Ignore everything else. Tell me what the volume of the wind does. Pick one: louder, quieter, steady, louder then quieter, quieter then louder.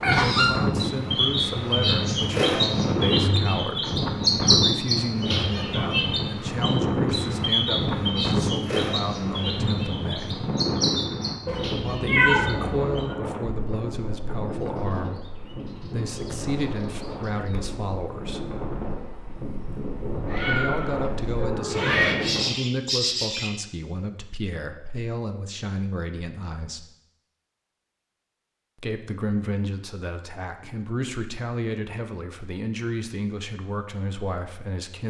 quieter.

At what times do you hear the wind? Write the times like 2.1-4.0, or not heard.
0.0-22.5.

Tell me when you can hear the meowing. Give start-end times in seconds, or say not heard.
11.4-13.2, 20.2-22.1.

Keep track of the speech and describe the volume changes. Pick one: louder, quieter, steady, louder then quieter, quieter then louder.
steady.